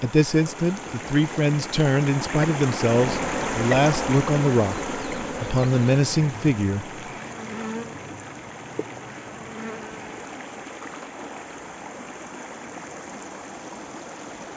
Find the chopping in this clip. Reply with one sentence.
The chopping can't be heard in this clip.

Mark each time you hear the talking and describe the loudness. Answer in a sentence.
You can hear the talking from 0.0 to 6.9 s, at a steady volume.